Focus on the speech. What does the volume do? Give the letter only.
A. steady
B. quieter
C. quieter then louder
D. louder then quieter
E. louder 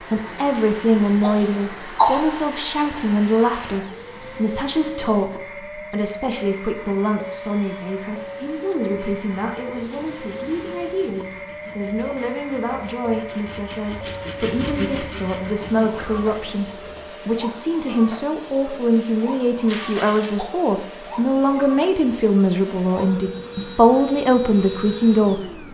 C.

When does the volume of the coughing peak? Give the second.
2 s.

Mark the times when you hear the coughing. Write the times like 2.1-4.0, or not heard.
0.6-2.4, 19.6-20.4.